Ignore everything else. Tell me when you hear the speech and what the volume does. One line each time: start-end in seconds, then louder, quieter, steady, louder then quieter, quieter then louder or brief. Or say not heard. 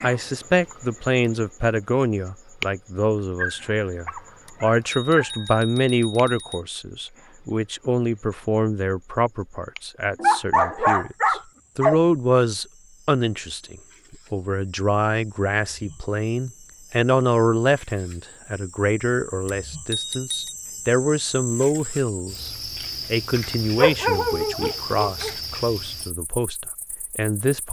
0.0-22.5 steady
23.1-27.6 quieter.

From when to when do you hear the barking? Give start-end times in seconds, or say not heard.
3.4-5.5, 10.2-12.0, 23.8-25.3.